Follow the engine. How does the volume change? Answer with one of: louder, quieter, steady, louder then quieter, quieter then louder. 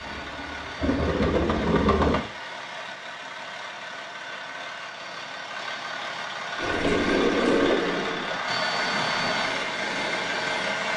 louder.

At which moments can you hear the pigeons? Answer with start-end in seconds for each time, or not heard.
0.0-2.2, 6.5-10.9.